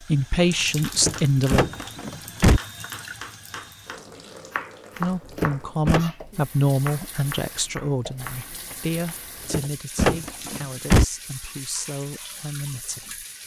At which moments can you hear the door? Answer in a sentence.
The door can be heard from 0.6 to 2.6 s, from 5.0 to 6.0 s and from 9.1 to 11.1 s.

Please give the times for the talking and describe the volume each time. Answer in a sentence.
You can hear the talking briefly from 0.0 to 1.6 s; and from 5.0 to 13.2 s, getting quieter.